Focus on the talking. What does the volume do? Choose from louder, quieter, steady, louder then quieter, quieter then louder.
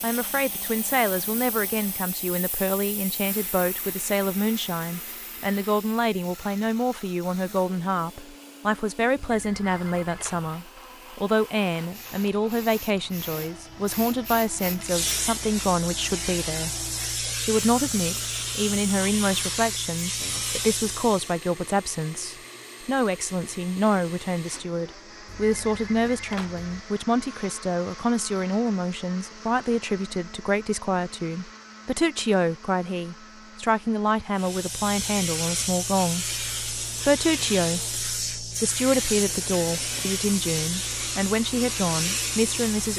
steady.